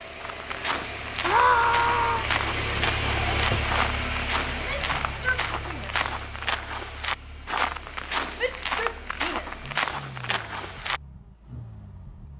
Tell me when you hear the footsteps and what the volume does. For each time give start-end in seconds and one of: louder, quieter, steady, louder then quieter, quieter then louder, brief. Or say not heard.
0.2-11.0 steady.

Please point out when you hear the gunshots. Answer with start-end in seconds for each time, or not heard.
not heard.